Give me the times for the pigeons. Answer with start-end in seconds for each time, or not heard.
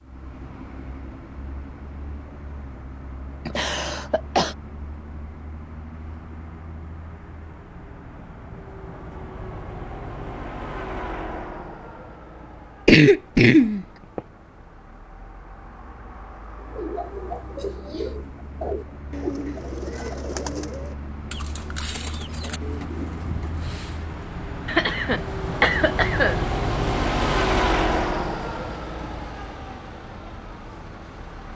16.6-24.2.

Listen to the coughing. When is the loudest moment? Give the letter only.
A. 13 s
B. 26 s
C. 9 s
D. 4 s
A.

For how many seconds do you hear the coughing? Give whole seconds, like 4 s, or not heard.
4 s.